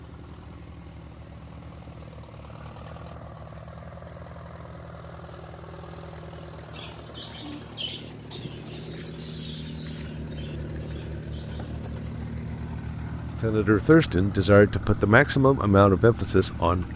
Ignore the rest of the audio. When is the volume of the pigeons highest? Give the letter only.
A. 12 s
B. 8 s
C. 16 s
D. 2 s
B.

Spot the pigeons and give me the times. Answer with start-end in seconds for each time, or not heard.
6.7-11.8.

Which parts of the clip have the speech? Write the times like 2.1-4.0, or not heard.
13.4-16.9.